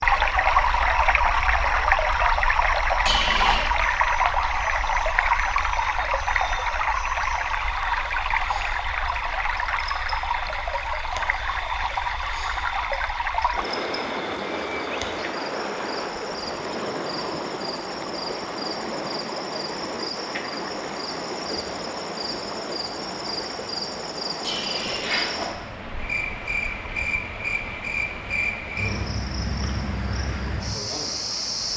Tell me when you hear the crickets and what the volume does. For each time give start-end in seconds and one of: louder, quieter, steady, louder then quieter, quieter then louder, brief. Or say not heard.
0.0-31.7 louder.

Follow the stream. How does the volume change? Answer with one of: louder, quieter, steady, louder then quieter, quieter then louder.
quieter.